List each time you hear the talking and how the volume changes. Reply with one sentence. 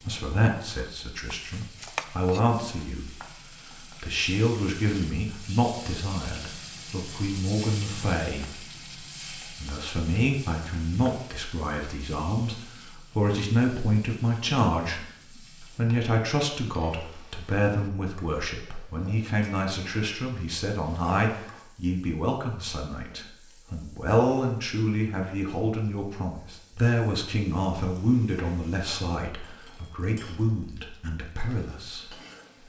The talking can be heard from 0.0 to 8.6 s, at a steady volume; and from 9.4 to 32.1 s, at a steady volume.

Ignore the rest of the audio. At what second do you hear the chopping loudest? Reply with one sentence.
The loudest moment of the chopping is at 2 seconds.